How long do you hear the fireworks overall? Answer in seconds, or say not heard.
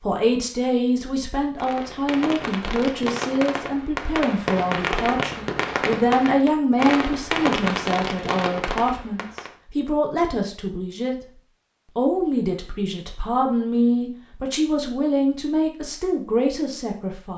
8 s.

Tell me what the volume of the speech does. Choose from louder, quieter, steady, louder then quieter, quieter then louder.
steady.